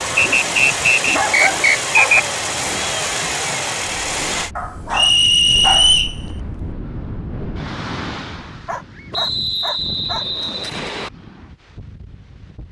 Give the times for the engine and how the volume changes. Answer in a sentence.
The engine can be heard from 0.0 to 4.5 s, at a steady volume.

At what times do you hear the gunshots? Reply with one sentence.
The gunshots can't be heard in this clip.